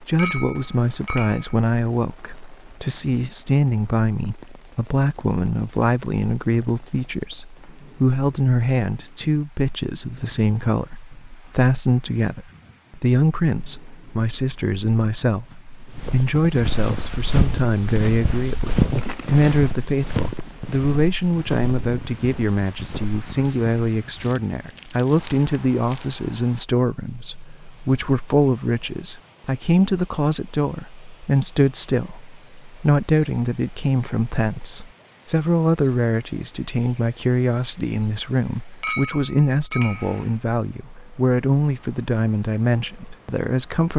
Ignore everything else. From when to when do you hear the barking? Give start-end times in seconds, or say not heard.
not heard.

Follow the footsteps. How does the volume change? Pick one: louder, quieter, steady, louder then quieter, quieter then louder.
quieter.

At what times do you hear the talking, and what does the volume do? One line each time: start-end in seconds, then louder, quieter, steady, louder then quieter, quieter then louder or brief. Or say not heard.
0.0-43.9 steady.